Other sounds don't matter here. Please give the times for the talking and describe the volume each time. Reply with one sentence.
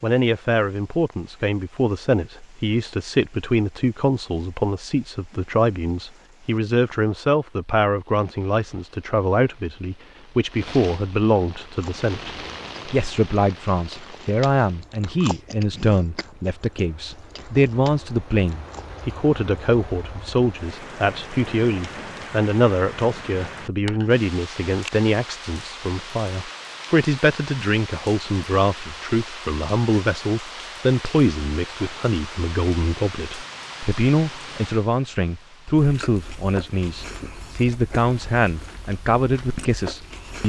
The talking can be heard from 0.0 to 40.4 s, at a steady volume.